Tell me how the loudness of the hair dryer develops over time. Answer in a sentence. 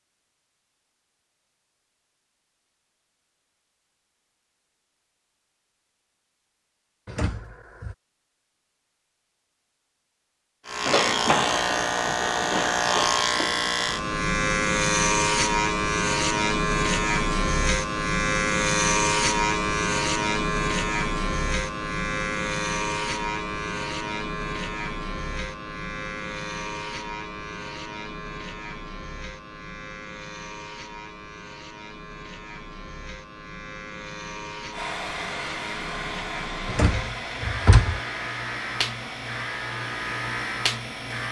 The loudness of the hair dryer goes down.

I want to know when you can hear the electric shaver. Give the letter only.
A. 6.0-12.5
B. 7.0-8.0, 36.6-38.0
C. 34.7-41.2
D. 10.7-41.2
D.